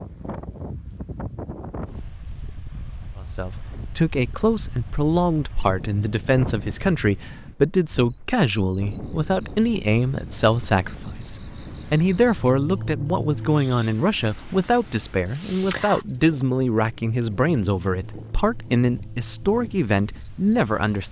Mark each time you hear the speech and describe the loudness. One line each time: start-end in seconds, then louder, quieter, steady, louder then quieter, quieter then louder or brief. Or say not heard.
3.2-21.0 steady.